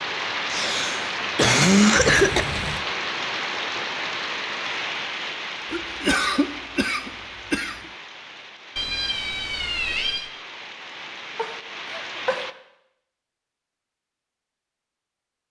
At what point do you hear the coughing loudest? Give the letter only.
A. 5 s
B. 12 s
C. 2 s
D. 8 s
C.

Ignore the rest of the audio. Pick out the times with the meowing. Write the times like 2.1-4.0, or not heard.
1.9-2.8, 8.8-10.3.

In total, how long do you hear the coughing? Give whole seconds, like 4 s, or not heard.
5 s.